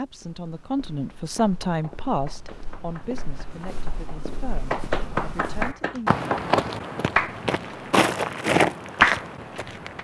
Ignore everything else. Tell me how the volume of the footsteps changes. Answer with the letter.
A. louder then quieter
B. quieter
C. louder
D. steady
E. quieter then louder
C.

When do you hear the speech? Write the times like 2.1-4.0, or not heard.
0.0-6.2.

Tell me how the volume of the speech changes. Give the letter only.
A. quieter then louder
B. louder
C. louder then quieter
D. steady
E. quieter
E.